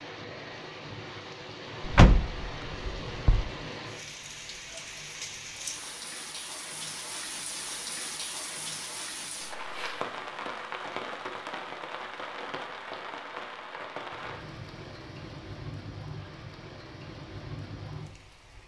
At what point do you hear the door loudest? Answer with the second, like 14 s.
2 s.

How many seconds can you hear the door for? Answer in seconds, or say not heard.
2 s.